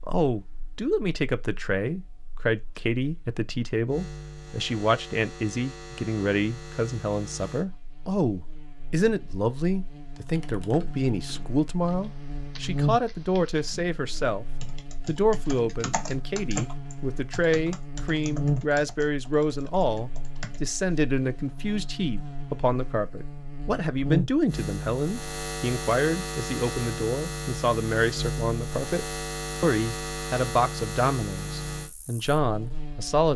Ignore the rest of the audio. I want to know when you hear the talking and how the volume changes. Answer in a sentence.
You can hear the talking from 0.1 to 33.3 s, at a steady volume.